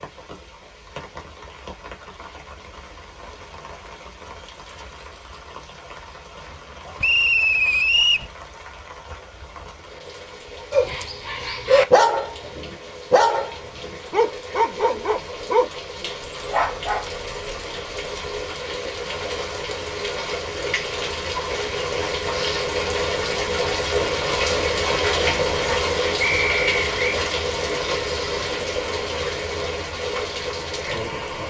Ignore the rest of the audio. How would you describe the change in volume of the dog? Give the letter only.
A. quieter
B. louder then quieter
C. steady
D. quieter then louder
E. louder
A.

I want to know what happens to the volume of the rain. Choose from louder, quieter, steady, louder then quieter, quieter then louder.
louder.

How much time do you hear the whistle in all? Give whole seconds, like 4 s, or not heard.
2 s.